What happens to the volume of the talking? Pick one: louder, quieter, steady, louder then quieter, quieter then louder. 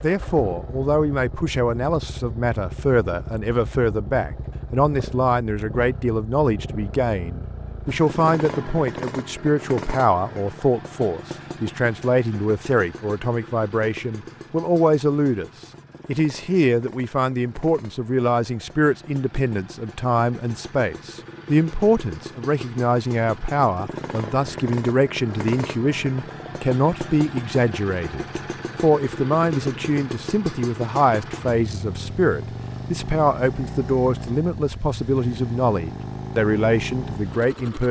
steady.